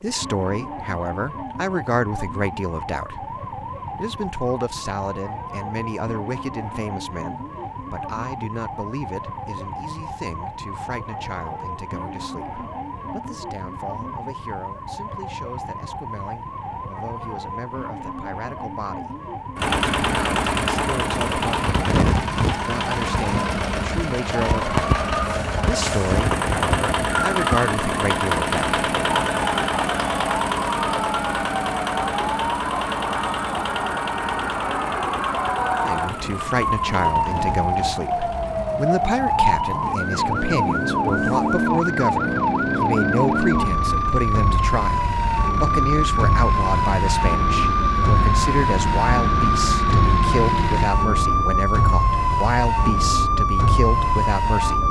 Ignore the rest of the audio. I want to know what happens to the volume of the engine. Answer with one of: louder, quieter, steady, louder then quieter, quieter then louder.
quieter then louder.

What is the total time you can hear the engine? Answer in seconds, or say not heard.
31 s.